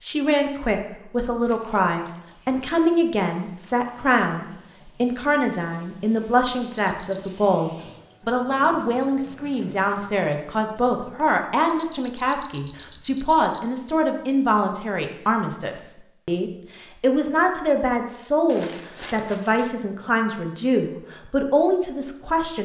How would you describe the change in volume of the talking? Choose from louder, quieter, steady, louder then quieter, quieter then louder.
steady.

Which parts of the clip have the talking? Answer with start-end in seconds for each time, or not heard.
0.0-22.6.